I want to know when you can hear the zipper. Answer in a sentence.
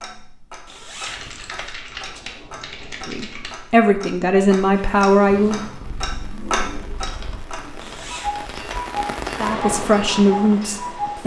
You can hear the zipper from 0.7 to 1.7 s and from 7.8 to 8.8 s.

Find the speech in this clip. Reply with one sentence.
The speech can be heard from 3.0 to 5.6 s and from 9.3 to 11.2 s.